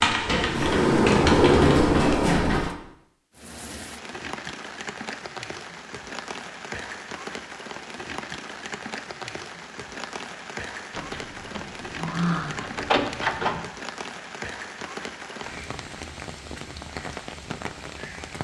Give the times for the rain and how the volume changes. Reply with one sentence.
You can hear the rain from 3.3 to 18.3 s, at a steady volume.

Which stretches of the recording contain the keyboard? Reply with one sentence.
You can hear the keyboard from 0.0 to 1.9 s.